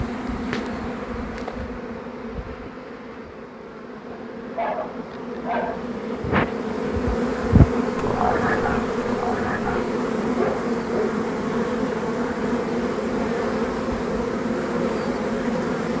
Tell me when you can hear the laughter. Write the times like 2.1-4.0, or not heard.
not heard.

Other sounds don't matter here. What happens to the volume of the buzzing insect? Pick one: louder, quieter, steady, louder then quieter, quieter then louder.
louder.